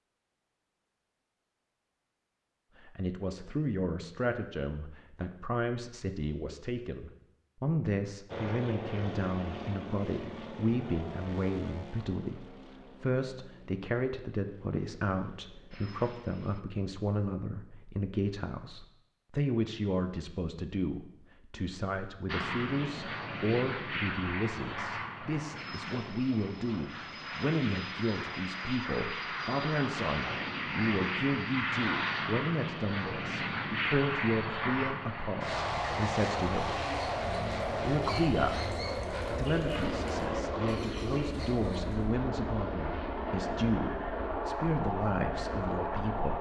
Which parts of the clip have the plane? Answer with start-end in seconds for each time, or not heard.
8.2-16.6, 22.2-46.3.